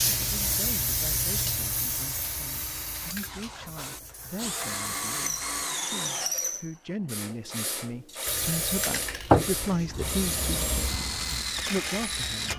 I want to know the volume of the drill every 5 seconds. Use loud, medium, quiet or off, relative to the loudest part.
medium, loud, loud.